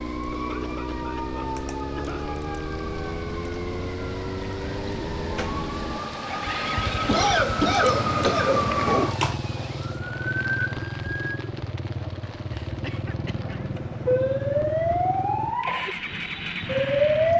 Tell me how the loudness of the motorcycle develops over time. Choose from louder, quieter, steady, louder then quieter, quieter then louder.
steady.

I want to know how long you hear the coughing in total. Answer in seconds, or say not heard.
5 s.